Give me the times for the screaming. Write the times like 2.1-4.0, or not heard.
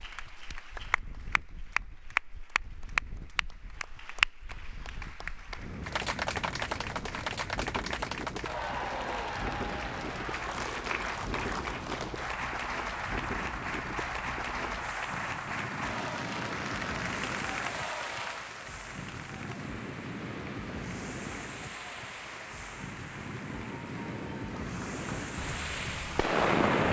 not heard.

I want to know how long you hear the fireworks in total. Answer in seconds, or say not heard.
2 s.